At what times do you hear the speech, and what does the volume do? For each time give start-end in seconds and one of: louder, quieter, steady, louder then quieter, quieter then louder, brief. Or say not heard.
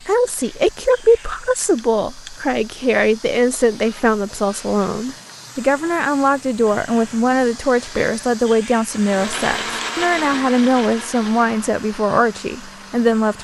0.1-13.3 steady.